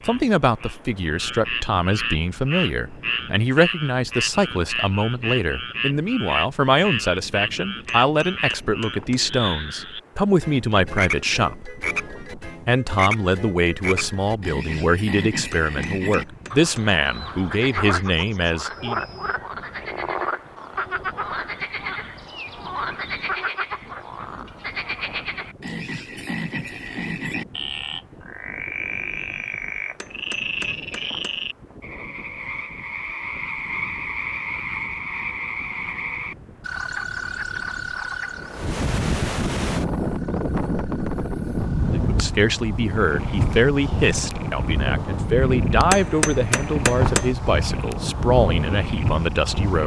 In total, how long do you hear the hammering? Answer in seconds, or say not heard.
6 s.